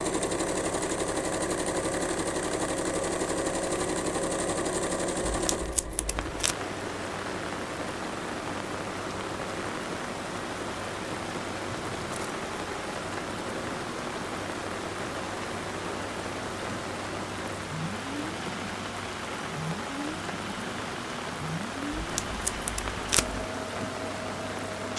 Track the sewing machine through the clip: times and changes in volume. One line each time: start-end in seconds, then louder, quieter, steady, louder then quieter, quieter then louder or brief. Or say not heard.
0.0-24.9 quieter.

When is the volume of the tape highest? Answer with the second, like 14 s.
23 s.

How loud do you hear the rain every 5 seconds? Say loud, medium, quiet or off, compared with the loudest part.
off, loud, loud, loud, loud.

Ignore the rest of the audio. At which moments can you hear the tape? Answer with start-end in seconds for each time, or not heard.
5.2-6.5, 22.1-23.4.